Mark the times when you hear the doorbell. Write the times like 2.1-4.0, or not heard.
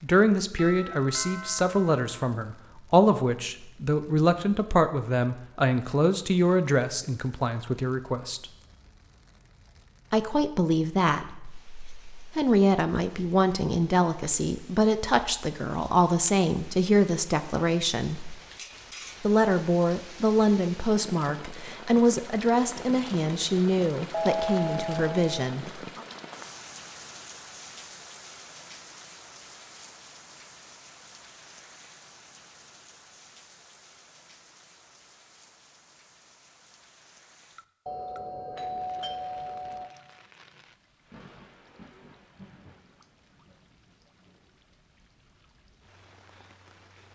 0.6-2.0, 24.1-25.4, 37.9-39.9.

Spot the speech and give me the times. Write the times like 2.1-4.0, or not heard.
0.0-8.4, 10.1-18.4, 19.2-26.0.